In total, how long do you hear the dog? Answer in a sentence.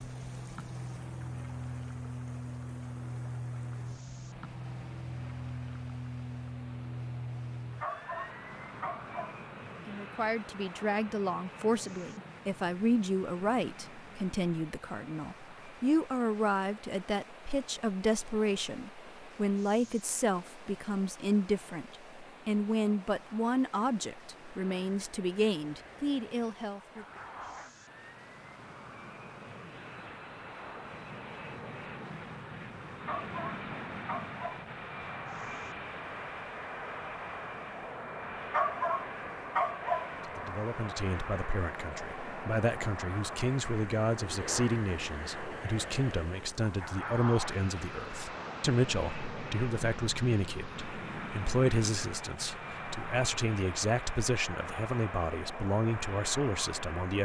You can hear the dog for 5 seconds altogether.